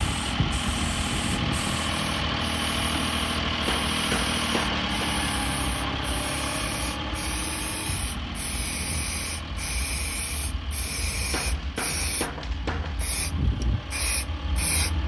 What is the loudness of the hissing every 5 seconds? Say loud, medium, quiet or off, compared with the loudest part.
medium, loud, loud.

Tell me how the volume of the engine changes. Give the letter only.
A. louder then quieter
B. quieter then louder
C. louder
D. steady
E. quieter
E.